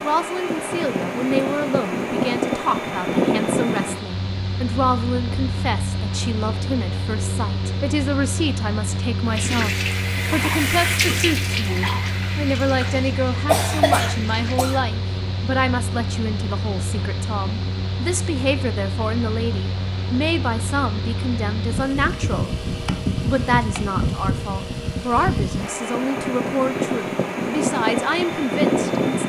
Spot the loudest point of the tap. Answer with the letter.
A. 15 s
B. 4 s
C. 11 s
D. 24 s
C.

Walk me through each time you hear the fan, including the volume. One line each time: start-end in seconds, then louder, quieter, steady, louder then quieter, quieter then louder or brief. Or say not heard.
0.0-29.2 quieter then louder.